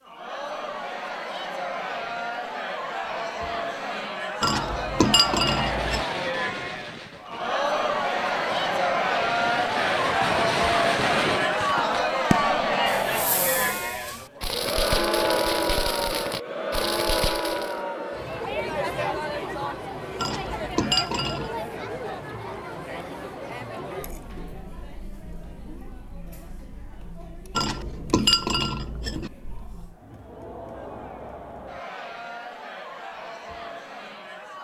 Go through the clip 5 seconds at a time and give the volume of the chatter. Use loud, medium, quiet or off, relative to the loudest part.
medium, loud, loud, loud, medium, quiet, quiet.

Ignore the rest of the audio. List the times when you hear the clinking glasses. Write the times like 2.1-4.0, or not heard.
4.4-6.0, 20.1-21.5, 27.6-29.3.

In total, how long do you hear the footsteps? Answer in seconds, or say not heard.
not heard.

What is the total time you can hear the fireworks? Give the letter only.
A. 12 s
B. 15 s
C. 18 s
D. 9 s
A.